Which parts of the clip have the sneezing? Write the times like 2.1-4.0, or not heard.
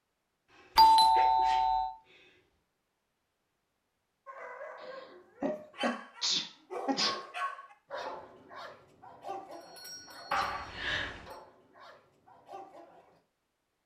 0.5-2.4, 4.8-7.2, 10.3-11.3.